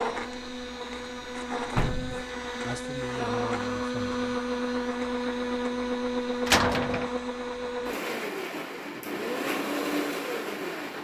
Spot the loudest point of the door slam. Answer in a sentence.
The volume of the door slam peaks at 7 seconds.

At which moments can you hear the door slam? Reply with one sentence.
You can hear the door slam from 1.8 to 2.2 s and from 6.5 to 7.1 s.